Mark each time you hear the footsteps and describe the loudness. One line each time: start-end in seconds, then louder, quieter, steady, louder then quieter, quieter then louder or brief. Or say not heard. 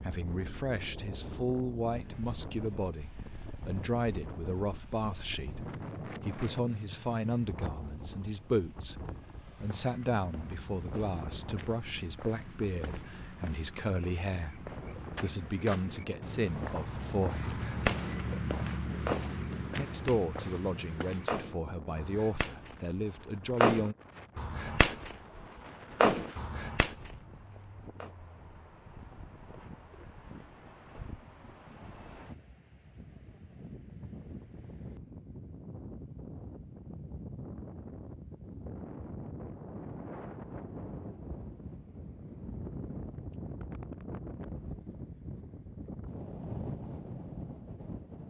9.6-21.3 louder.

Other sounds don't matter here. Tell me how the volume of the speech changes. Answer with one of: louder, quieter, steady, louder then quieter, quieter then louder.
steady.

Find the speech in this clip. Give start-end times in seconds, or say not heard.
0.0-17.6, 19.8-23.9.